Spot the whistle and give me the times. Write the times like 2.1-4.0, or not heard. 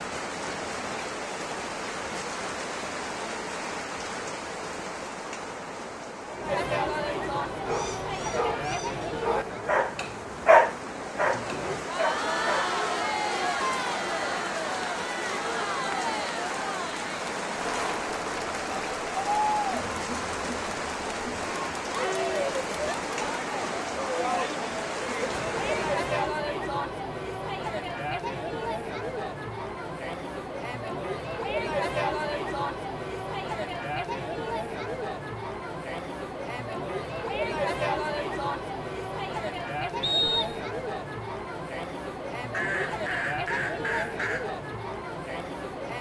40.0-40.6.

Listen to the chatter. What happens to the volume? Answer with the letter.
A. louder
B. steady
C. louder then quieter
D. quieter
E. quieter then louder
B.